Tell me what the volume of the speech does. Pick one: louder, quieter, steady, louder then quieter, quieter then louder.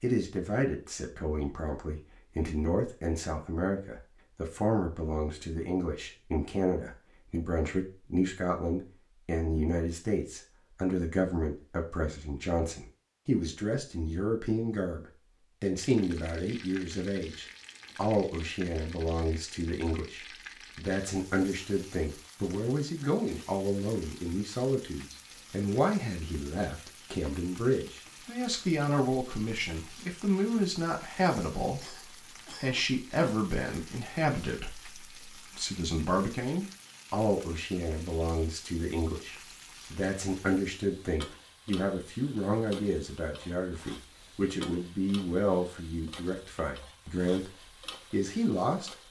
steady.